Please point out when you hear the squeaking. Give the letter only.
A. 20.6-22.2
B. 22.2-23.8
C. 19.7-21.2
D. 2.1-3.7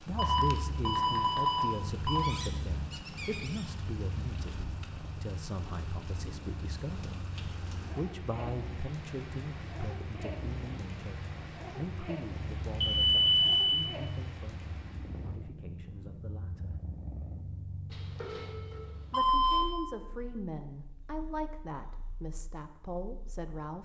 D.